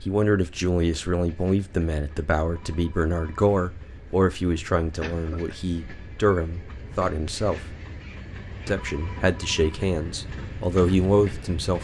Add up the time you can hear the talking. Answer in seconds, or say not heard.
11 s.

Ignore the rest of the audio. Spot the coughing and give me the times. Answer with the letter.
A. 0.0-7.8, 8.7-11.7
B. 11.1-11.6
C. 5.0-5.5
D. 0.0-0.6
C.